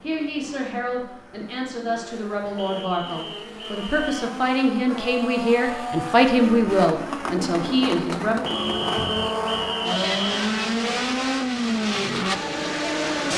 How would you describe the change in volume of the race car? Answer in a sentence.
The loudness of the race car goes up.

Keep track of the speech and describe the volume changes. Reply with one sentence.
The loudness of the speech goes up.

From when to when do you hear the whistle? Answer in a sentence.
You can hear the whistle from 2.5 to 4.3 s and from 8.4 to 10.4 s.